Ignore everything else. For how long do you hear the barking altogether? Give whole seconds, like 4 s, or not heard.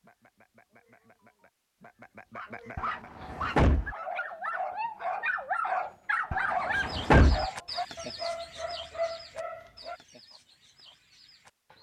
8 s.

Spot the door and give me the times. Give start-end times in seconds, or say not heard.
2.8-4.0, 6.3-7.5.